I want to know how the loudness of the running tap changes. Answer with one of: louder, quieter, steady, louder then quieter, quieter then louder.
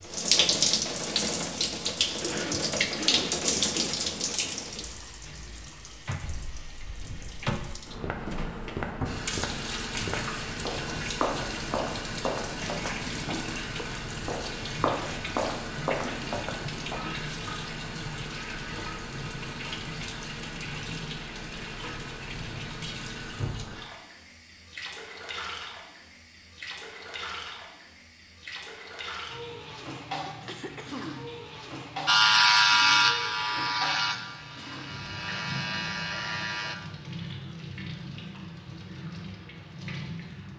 quieter.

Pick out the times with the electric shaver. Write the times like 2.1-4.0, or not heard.
32.0-36.8.